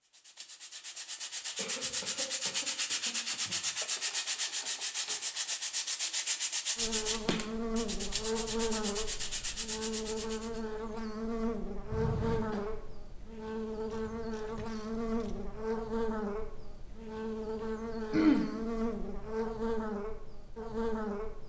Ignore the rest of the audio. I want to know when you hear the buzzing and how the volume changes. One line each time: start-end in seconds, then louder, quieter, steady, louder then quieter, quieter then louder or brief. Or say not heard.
6.8-21.4 steady.